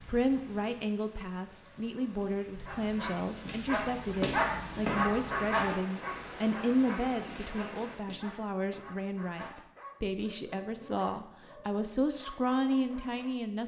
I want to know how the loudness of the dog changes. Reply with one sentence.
The loudness of the dog goes down.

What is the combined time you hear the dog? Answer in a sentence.
The dog can be heard for 11 seconds in total.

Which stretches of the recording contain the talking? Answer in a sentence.
You can hear the talking from 0.0 to 13.6 s.